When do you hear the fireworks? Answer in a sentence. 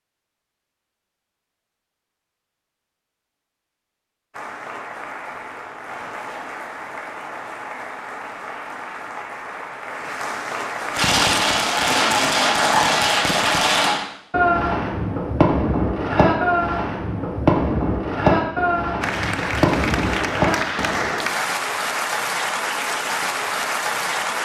The fireworks can be heard from 10.9 to 21.1 s.